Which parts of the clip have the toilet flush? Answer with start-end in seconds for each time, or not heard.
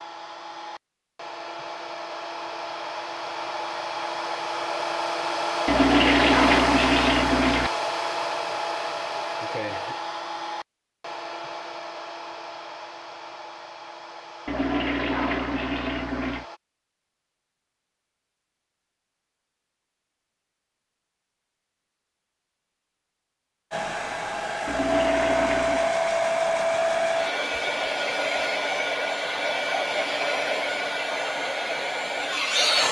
5.7-7.7, 14.4-16.4, 24.6-25.9.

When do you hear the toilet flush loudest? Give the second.
6 s.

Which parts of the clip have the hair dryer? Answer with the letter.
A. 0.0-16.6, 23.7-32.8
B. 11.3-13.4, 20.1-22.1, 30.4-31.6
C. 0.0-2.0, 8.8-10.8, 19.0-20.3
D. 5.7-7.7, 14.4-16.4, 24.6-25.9
A.